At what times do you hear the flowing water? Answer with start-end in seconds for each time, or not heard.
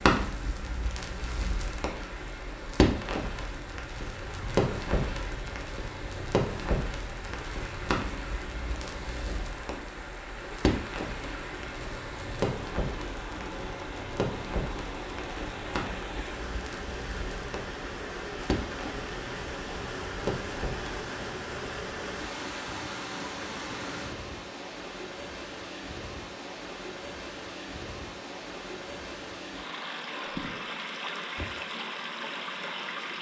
0.0-33.1.